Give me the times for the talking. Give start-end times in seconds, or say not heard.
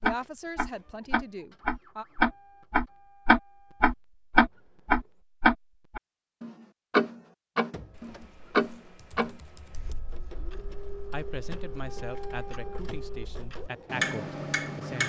0.0-2.0, 11.1-15.0.